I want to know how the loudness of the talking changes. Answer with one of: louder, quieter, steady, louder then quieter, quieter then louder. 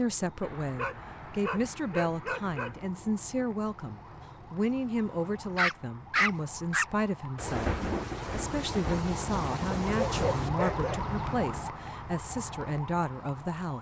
steady.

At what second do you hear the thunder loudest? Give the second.
8 s.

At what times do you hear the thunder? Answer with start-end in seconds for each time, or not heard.
7.3-10.5.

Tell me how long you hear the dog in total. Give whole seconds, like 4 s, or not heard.
5 s.